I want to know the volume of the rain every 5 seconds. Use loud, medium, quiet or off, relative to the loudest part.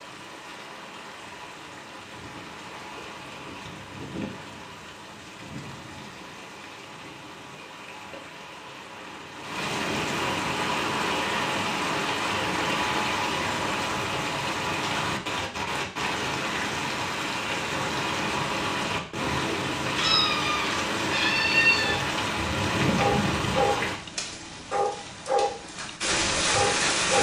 quiet, medium, loud, loud, loud, loud.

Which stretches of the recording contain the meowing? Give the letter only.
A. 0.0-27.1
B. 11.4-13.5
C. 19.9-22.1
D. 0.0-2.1
C.